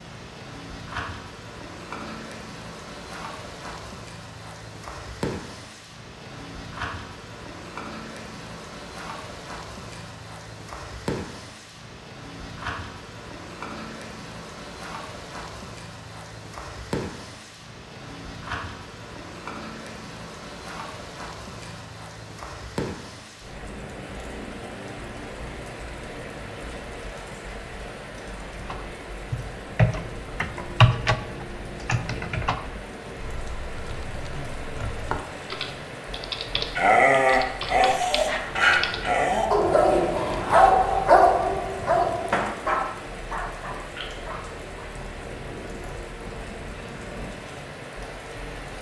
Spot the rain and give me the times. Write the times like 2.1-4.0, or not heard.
0.0-48.7.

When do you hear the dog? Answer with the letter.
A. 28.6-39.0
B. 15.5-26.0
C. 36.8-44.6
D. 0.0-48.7
C.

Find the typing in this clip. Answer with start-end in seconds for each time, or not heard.
28.6-39.0.